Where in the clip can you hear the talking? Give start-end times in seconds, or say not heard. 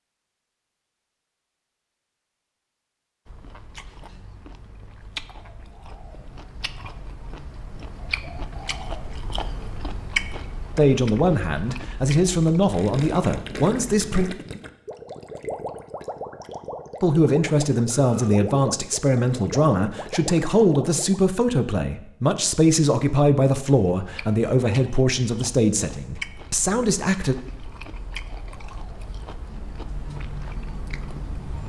10.8-14.3, 17.0-27.4.